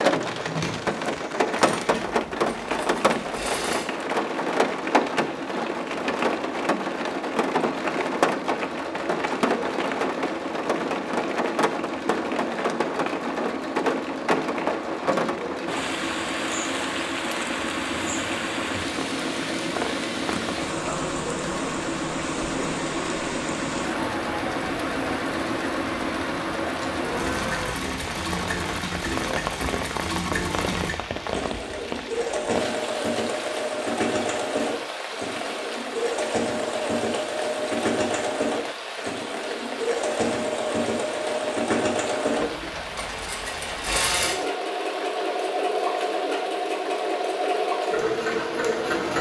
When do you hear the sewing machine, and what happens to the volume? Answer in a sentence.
You can hear the sewing machine from 0.0 to 49.1 s, getting louder.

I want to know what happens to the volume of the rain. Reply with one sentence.
The volume of the rain goes down.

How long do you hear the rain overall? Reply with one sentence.
You can hear the rain for 49 seconds altogether.